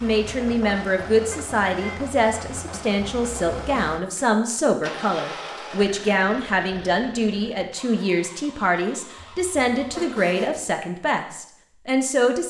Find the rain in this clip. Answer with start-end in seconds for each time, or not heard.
not heard.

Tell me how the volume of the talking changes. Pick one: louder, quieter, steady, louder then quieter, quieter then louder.
steady.